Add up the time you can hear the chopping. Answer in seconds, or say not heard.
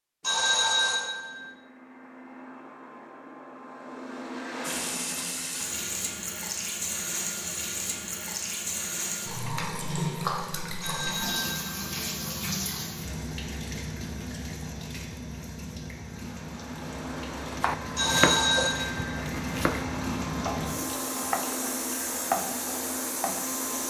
6 s.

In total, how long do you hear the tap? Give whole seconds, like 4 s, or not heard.
19 s.